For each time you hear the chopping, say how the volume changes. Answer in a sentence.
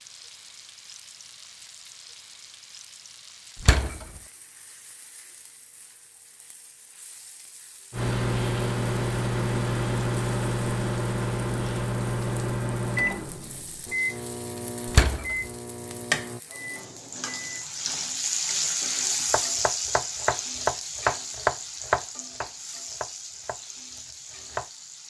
The chopping can be heard from 19.3 to 24.7 s, getting louder then quieter.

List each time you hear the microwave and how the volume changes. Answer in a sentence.
You can hear the microwave from 7.9 to 17.6 s, getting quieter.